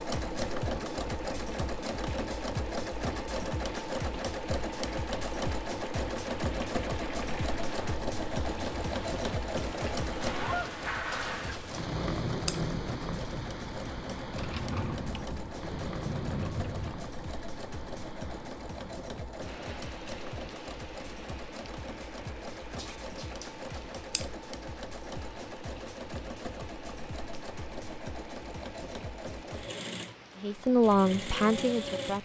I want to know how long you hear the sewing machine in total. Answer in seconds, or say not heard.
32 s.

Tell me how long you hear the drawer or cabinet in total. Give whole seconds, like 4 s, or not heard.
3 s.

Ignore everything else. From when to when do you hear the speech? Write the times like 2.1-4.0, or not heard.
30.4-32.2.